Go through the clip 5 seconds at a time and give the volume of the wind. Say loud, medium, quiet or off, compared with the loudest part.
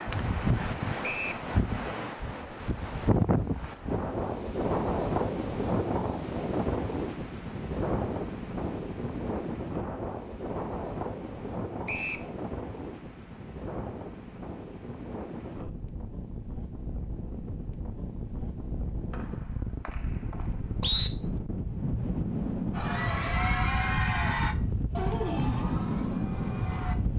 loud, loud, medium, medium, loud, loud.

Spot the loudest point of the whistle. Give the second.
21 s.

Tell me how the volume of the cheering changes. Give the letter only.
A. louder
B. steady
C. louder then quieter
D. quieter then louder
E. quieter
E.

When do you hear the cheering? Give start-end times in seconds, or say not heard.
22.7-26.9.